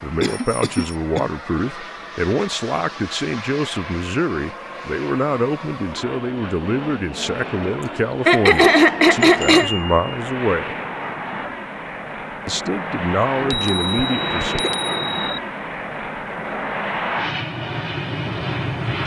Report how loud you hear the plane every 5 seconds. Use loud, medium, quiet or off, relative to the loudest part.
medium, medium, loud, loud.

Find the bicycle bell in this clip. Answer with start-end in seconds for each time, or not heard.
0.2-1.0, 9.2-10.1, 13.3-15.4.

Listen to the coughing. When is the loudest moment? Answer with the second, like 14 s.
9 s.